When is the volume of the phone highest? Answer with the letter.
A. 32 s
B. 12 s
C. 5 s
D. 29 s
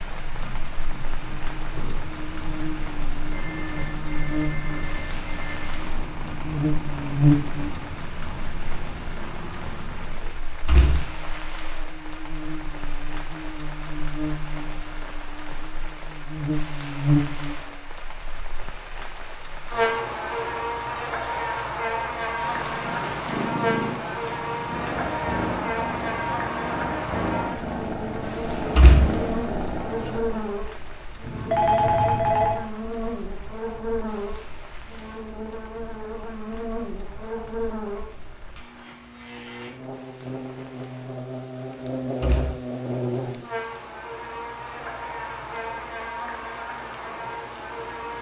A.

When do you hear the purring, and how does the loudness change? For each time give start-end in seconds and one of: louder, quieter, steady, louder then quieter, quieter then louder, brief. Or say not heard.
0.0-10.4 steady
22.2-30.5 steady.